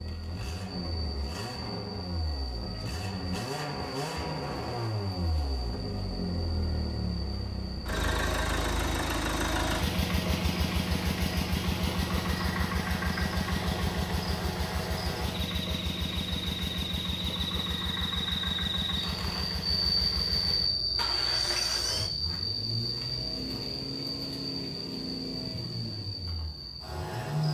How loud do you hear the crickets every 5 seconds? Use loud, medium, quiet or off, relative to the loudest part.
quiet, quiet, medium, loud, loud, medium.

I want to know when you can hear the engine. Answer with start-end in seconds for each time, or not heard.
0.0-27.4.